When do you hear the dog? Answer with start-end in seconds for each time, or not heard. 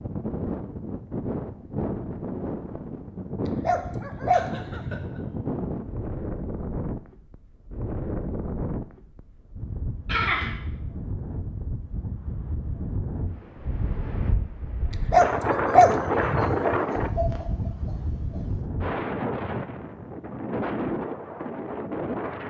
3.5-5.1, 14.9-16.8.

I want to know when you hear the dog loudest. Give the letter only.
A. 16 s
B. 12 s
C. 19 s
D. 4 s
A.